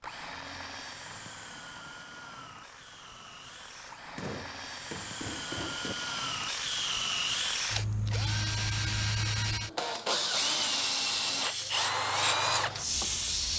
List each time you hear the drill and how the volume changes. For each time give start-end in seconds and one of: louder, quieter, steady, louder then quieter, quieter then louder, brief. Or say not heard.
0.0-13.5 louder.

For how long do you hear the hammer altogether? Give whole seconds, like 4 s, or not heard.
2 s.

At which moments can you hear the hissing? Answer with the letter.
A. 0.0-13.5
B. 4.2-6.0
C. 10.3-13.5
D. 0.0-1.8
C.